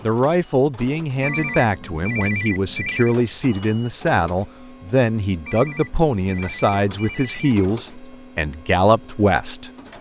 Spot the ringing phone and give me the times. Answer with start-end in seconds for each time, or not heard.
1.2-3.1, 5.5-7.5.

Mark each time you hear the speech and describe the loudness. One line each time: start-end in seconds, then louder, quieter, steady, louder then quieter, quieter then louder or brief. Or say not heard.
0.0-9.7 steady.